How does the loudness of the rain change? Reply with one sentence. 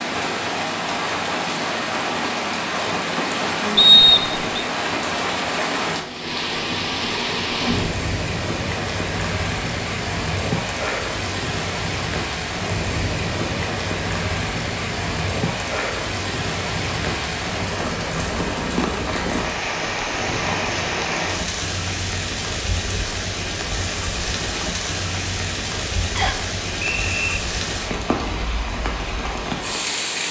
The loudness of the rain stays about the same.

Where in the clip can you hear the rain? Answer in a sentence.
The rain can be heard from 0.0 to 30.2 s.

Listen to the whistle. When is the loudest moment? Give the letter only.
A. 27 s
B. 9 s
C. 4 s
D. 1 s
C.